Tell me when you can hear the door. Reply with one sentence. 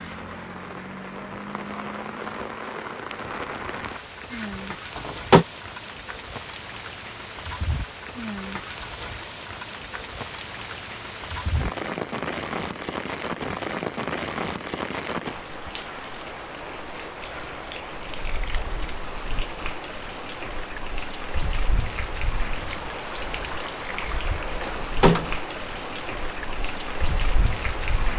You can hear the door from 4.3 to 5.5 s and from 24.0 to 25.3 s.